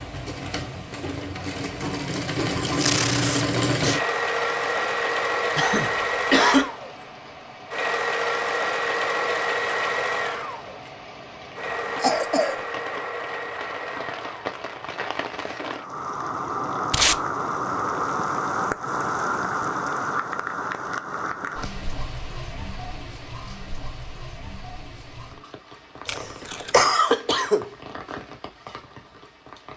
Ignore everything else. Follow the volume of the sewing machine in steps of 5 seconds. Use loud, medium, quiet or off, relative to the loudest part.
loud, loud, medium, off, off, off.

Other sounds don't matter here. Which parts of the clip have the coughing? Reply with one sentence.
The coughing can be heard from 5.5 to 6.7 s, from 12.0 to 12.6 s and from 26.1 to 27.7 s.